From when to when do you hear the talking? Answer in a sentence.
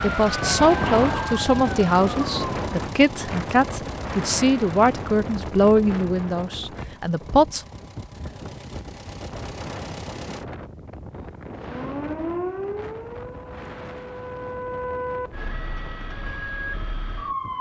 You can hear the talking from 0.0 to 7.6 s.